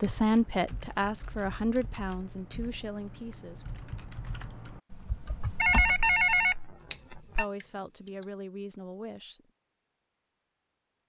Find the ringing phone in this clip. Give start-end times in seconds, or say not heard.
5.6-7.5.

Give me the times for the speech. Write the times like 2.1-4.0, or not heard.
0.0-3.6, 7.3-9.4.